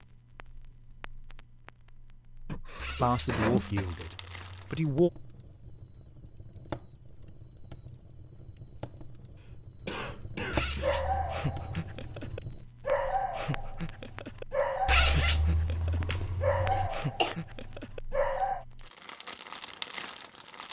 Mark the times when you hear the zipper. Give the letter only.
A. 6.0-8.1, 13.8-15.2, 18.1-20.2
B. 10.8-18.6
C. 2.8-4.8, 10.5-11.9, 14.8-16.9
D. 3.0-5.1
C.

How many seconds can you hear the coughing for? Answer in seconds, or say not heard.
4 s.